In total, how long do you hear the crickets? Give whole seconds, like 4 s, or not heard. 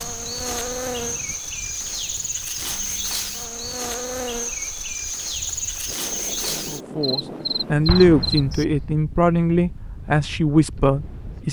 9 s.